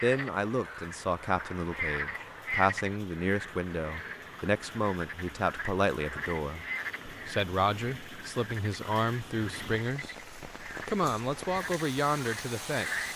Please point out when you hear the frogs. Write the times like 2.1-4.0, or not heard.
0.0-13.1.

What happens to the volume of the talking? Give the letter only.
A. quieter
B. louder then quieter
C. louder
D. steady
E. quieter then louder
D.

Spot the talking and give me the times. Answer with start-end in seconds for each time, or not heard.
0.0-13.1.